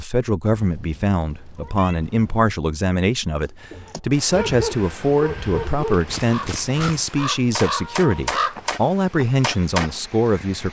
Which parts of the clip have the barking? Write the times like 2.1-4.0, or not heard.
3.7-5.9.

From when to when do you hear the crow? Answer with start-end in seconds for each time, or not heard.
3.4-10.6.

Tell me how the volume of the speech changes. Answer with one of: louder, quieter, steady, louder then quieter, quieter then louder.
steady.